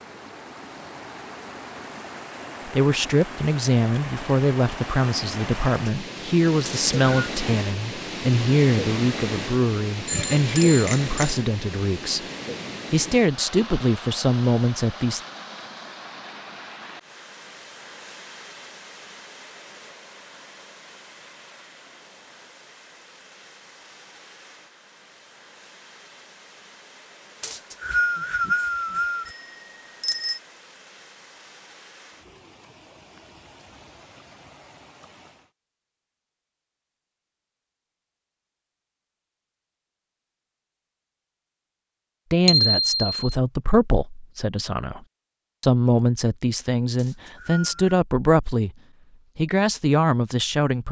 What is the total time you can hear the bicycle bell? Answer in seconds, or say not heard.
3 s.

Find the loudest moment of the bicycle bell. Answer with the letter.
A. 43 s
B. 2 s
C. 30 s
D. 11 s
A.